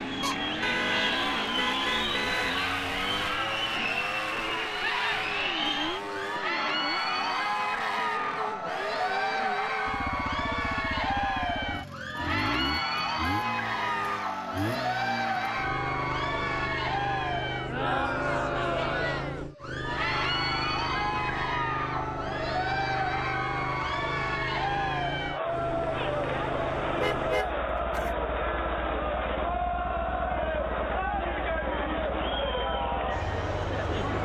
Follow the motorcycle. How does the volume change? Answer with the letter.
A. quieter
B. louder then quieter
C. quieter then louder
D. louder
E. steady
A.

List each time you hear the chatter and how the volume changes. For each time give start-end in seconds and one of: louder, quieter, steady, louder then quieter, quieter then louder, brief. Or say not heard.
0.0-34.2 steady.